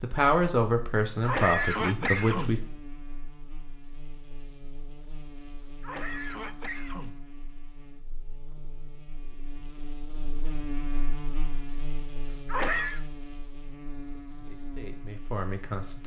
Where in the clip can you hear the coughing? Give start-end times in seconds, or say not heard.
1.1-2.6, 5.7-7.2, 12.3-13.0.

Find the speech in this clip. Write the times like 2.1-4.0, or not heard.
0.0-2.6, 14.4-16.0.